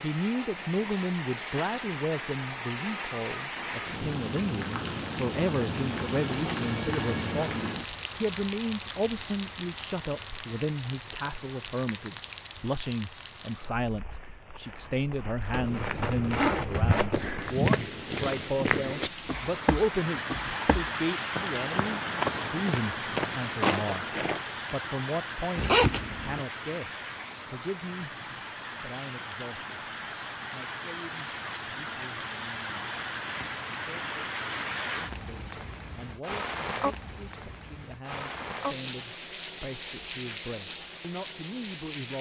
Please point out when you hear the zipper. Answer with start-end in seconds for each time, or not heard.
15.5-17.1, 25.6-26.4.